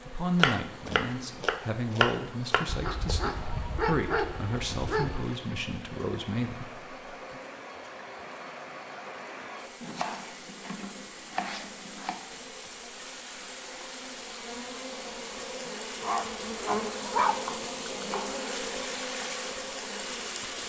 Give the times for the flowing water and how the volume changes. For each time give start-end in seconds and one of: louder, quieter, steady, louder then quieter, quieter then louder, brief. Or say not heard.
0.0-20.6 louder.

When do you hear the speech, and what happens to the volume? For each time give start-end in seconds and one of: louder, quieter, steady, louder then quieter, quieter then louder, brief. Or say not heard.
0.1-7.4 steady.